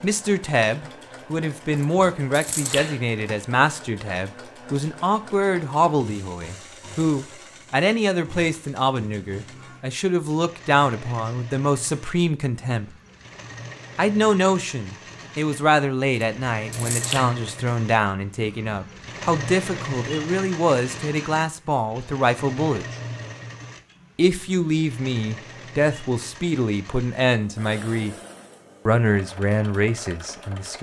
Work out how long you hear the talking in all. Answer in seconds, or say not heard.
28 s.